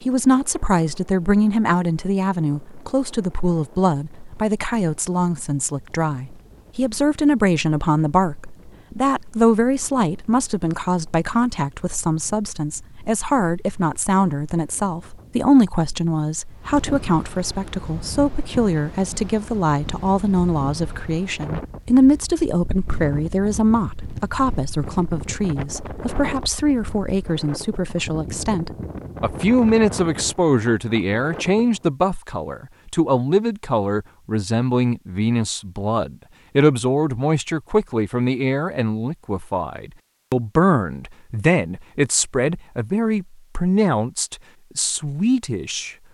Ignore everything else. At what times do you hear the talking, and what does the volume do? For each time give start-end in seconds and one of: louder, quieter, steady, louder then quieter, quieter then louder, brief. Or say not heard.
0.0-46.0 steady.